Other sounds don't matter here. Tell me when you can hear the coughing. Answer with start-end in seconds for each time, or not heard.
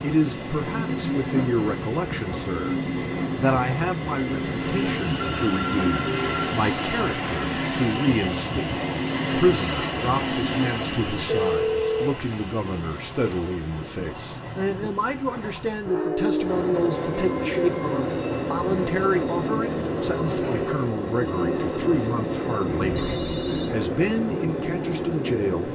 not heard.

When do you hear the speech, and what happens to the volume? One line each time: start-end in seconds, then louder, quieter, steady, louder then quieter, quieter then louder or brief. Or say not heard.
0.0-25.6 steady.